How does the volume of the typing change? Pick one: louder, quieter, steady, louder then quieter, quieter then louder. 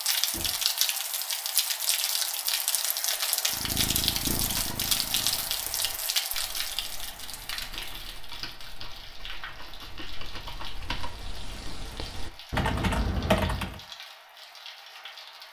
louder.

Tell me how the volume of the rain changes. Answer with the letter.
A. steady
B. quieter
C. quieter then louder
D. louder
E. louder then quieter
B.